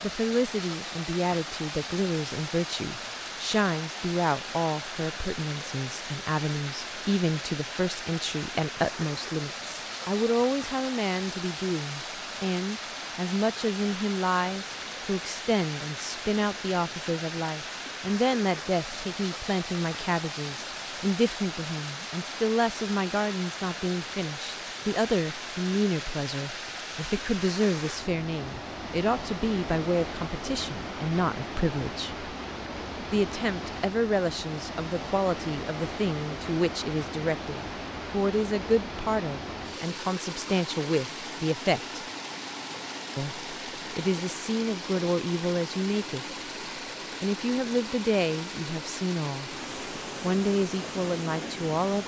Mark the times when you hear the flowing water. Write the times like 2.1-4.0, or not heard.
0.0-52.0.